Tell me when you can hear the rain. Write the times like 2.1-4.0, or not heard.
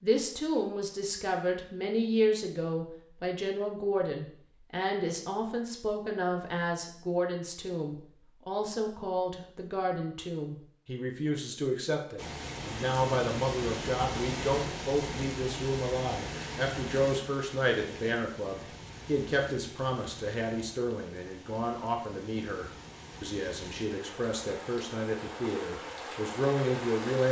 12.2-27.2.